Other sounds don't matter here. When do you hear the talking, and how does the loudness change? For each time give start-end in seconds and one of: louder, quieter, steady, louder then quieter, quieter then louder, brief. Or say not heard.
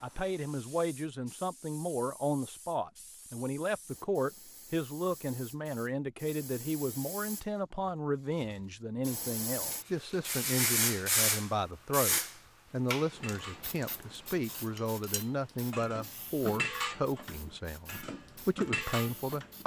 0.0-19.6 steady.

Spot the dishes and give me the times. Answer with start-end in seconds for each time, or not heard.
13.1-19.6.